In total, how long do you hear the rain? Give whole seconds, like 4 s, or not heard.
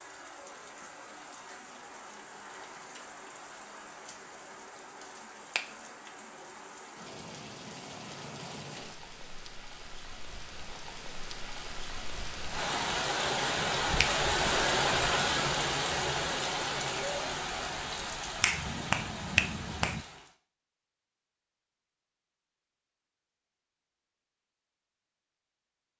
20 s.